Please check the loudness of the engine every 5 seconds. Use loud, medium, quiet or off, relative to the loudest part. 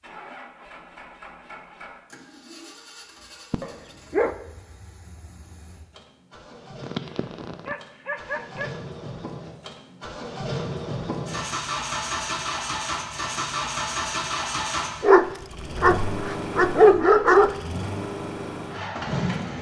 quiet, quiet, loud, loud.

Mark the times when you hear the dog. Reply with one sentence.
You can hear the dog from 3.5 to 4.3 s, from 6.8 to 8.7 s and from 15.0 to 17.6 s.